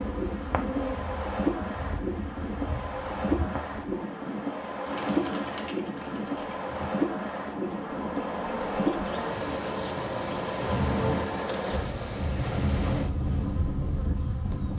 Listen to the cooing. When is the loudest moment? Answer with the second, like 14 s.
5 s.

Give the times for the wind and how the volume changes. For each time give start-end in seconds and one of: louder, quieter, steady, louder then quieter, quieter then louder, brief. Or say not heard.
0.0-14.7 steady.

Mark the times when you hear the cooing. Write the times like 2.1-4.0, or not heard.
4.8-6.7.